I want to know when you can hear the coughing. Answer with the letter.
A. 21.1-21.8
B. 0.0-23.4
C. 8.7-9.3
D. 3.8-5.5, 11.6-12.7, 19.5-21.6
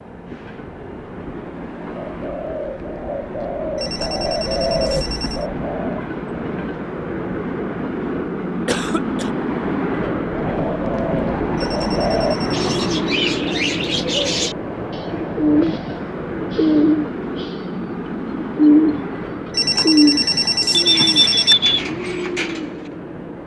C.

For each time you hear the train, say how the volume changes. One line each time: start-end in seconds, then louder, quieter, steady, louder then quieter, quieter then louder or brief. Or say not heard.
0.0-23.4 louder then quieter.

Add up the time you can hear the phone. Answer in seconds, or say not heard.
5 s.